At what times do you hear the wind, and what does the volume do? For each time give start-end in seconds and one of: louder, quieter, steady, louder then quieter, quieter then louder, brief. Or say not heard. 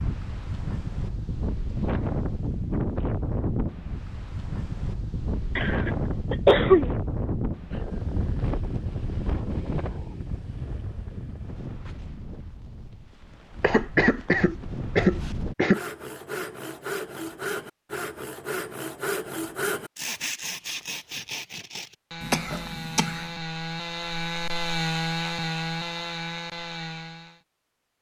0.0-15.6 quieter.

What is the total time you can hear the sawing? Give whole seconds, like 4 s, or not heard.
12 s.